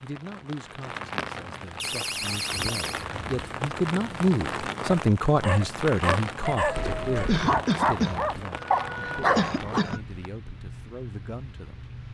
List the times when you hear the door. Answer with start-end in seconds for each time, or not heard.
1.8-3.0, 6.8-7.5.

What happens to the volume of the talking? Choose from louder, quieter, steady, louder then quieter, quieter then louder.
louder then quieter.